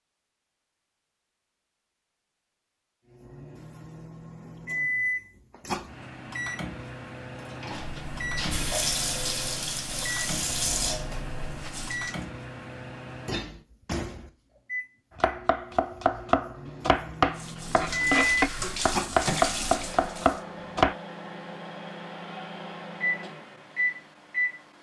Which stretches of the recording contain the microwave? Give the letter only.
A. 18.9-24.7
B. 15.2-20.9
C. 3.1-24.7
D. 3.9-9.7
C.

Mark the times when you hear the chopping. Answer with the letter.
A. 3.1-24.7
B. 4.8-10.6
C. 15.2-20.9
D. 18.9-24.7
C.